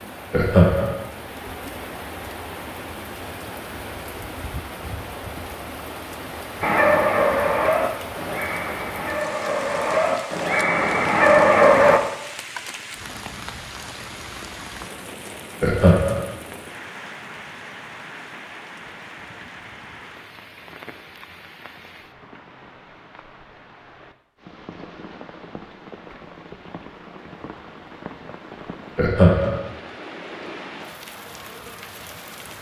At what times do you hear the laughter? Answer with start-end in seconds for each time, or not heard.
0.3-0.9, 15.6-16.2, 28.9-29.6.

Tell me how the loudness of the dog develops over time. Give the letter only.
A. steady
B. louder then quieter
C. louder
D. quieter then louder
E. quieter
D.